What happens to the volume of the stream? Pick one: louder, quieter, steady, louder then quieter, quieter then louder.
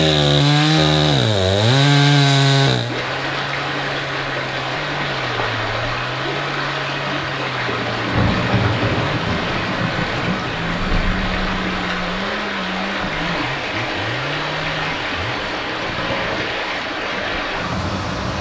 steady.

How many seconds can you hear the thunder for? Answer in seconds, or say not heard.
4 s.